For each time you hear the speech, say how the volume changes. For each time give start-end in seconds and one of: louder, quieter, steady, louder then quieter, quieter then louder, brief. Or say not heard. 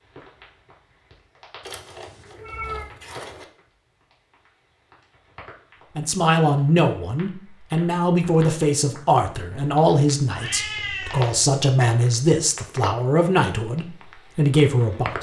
6.0-15.1 steady.